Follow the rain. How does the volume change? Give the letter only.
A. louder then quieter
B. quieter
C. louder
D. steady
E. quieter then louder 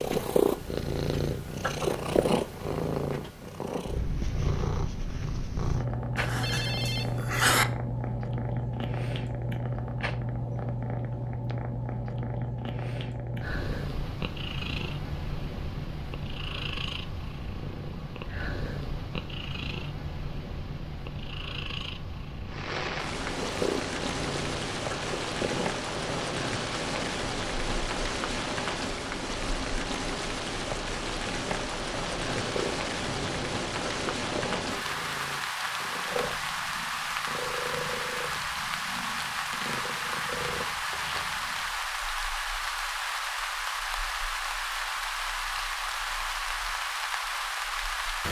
D.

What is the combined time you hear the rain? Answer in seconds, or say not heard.
26 s.